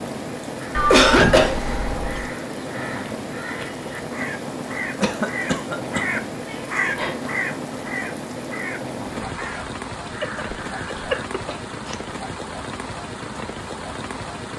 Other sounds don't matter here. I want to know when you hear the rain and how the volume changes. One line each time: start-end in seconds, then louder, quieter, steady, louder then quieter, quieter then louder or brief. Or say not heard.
0.0-14.5 steady.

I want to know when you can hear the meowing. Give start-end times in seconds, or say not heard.
0.7-2.3, 6.5-7.2, 10.2-12.0.